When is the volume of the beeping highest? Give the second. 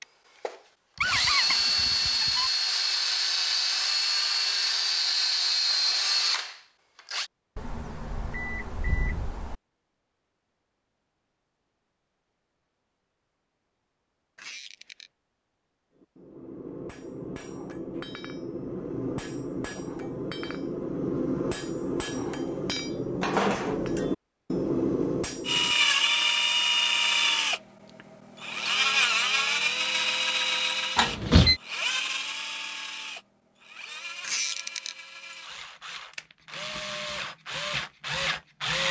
31 s.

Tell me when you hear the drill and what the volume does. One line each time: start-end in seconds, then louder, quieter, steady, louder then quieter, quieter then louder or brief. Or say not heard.
0.0-7.3 steady
25.4-38.8 quieter then louder.